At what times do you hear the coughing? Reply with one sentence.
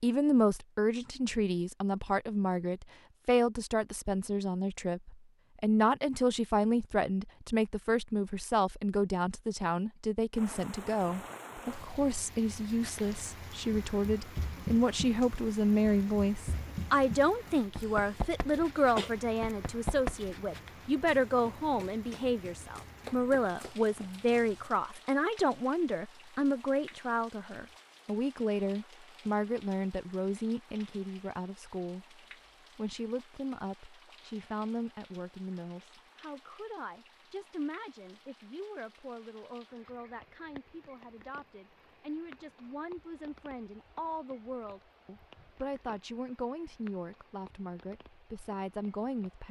You can hear the coughing from 17.8 to 19.1 s.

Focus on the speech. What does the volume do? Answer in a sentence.
The volume of the speech goes down.